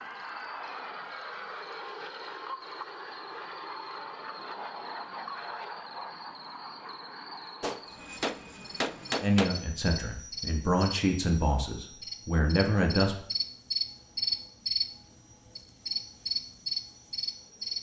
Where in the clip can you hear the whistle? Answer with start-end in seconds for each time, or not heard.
not heard.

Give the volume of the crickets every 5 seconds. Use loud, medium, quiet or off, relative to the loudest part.
quiet, quiet, loud, loud.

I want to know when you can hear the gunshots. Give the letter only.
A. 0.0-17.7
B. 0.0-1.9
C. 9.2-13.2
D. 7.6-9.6
D.